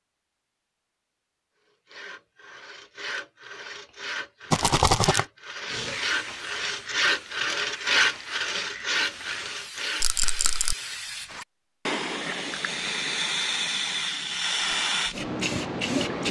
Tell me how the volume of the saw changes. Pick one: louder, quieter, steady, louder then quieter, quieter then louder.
louder then quieter.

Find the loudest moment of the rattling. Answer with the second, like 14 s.
5 s.